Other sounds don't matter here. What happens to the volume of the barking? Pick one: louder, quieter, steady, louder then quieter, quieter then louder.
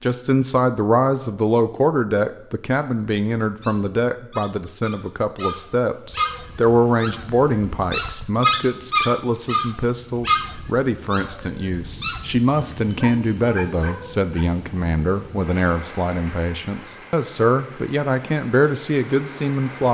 louder then quieter.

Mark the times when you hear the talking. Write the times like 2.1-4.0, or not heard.
0.0-19.8.